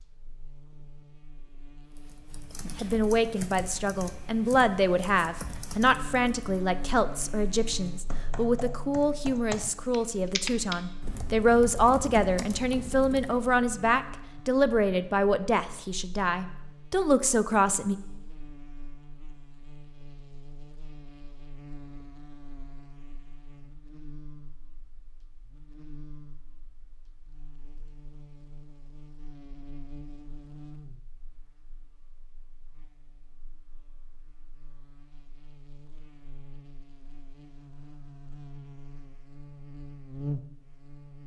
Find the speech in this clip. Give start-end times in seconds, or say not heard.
2.8-17.9.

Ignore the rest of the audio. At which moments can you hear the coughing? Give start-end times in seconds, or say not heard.
not heard.